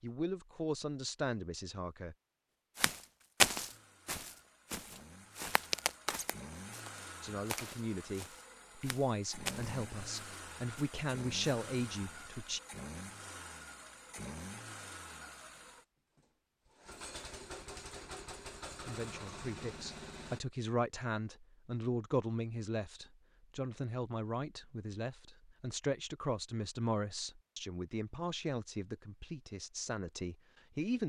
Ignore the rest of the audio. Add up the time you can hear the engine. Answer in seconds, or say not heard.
17 s.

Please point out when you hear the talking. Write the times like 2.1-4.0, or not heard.
0.0-2.1, 7.2-12.6, 18.8-31.0.